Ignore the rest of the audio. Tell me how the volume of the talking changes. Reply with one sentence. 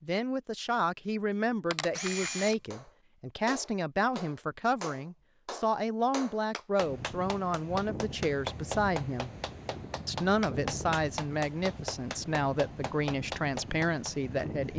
The loudness of the talking stays about the same.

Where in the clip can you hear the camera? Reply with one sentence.
You can hear the camera from 1.7 to 2.7 s.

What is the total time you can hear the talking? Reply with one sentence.
The talking can be heard for 14 seconds in total.